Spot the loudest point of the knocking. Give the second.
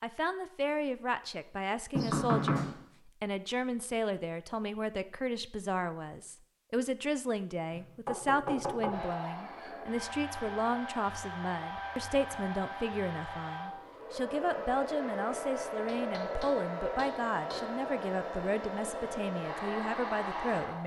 2 s.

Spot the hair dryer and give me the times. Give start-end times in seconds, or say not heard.
8.9-20.8.